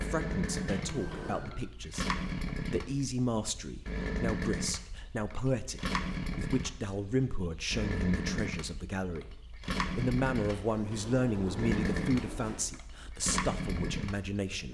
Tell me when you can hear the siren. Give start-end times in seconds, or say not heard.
0.1-1.6.